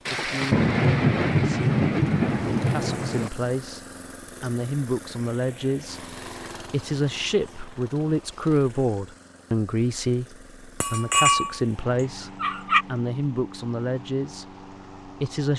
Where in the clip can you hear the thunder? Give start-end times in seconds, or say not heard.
0.1-3.3.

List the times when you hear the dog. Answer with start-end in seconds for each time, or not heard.
10.8-11.6, 12.4-12.8.